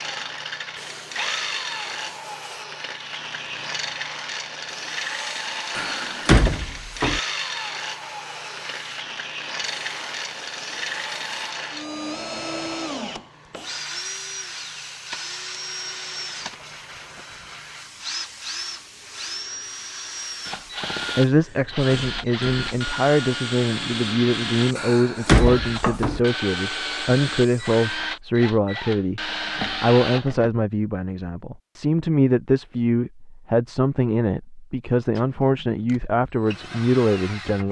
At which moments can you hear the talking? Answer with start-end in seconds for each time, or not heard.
21.1-37.6.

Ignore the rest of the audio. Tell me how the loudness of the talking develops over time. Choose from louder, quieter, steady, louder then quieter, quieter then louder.
steady.